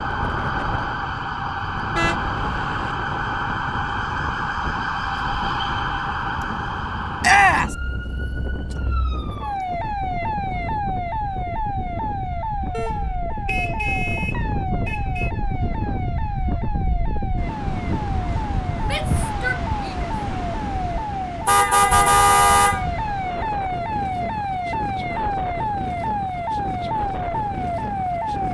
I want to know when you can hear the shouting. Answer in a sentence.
You can hear the shouting from 7.2 to 7.8 s and from 18.8 to 20.1 s.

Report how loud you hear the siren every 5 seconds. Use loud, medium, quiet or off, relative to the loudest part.
loud, loud, loud, medium, loud, loud.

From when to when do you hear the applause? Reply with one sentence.
You can't hear the applause here.